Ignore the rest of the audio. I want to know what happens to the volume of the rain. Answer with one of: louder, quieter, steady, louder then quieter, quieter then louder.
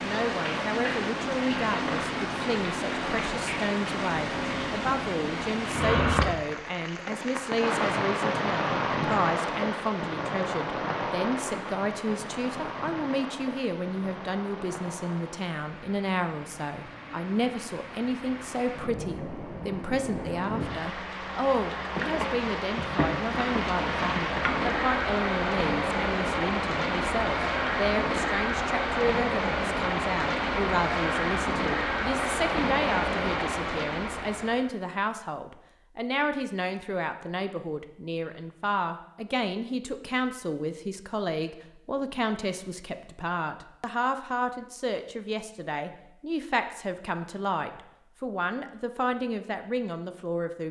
quieter then louder.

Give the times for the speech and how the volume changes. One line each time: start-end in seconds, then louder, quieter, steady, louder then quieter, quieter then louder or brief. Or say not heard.
0.0-50.6 steady.